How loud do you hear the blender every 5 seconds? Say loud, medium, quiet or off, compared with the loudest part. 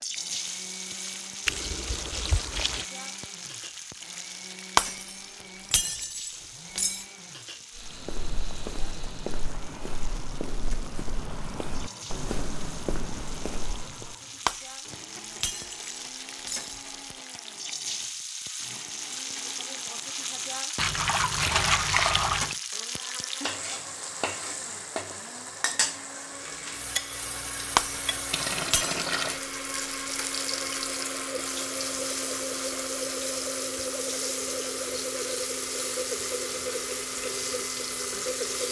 quiet, quiet, quiet, quiet, quiet, medium, loud, loud.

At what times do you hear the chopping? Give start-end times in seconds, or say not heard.
not heard.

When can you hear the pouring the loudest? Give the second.
22 s.